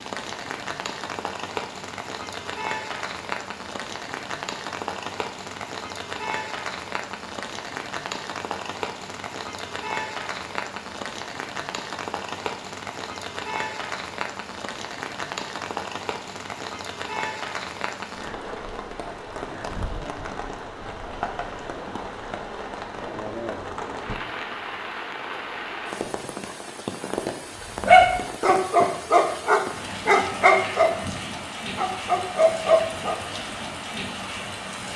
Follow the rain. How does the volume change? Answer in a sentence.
The loudness of the rain stays about the same.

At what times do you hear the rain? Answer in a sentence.
The rain can be heard from 0.0 to 34.9 s.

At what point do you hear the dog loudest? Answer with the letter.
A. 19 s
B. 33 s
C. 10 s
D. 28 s
D.